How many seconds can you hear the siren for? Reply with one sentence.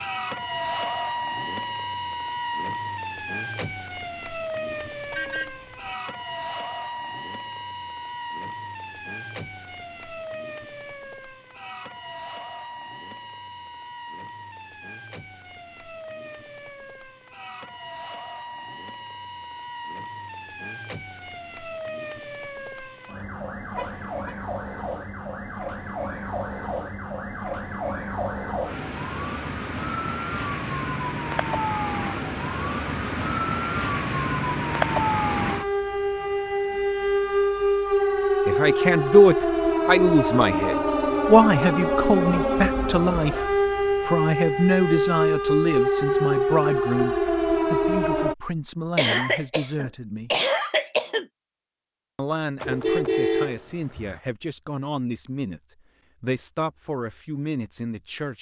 You can hear the siren for 48 seconds altogether.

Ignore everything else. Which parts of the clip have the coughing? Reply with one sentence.
The coughing can be heard from 49.0 to 51.2 s.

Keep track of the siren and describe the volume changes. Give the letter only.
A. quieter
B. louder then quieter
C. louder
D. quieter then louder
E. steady
D.